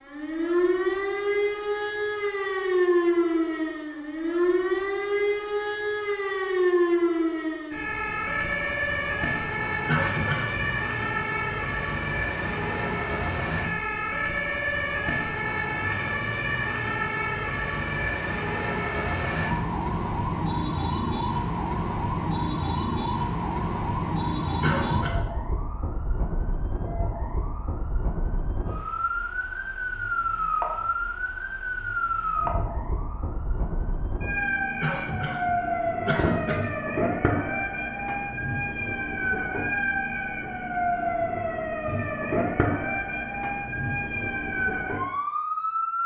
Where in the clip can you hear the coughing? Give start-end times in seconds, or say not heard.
9.8-10.8, 24.6-25.2, 34.8-36.6.